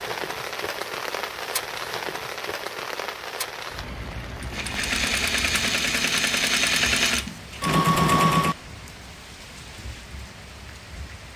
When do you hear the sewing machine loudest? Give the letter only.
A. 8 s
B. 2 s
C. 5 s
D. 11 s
A.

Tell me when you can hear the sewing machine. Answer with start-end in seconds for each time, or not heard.
4.4-8.6.